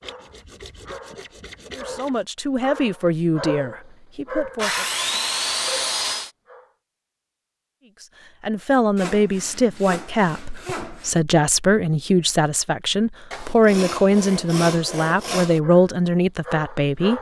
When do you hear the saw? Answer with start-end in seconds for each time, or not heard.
0.0-2.2, 4.5-6.3, 8.9-11.2, 13.3-15.6.